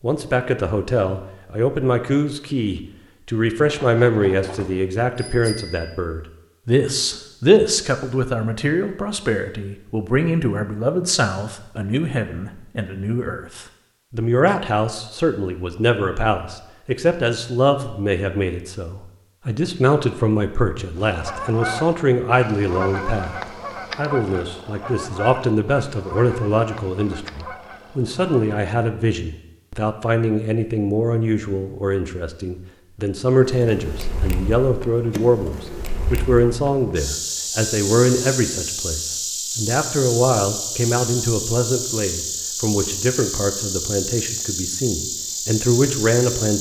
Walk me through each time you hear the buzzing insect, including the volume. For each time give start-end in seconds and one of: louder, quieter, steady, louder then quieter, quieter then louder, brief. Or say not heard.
33.4-46.5 louder.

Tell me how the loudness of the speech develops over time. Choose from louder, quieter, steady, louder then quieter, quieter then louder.
steady.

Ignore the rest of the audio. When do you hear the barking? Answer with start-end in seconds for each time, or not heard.
not heard.